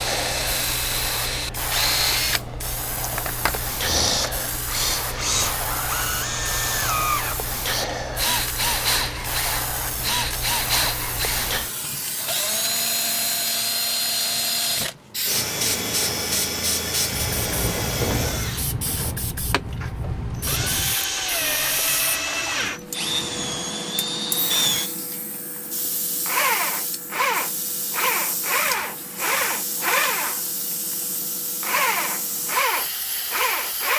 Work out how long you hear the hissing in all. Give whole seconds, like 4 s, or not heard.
34 s.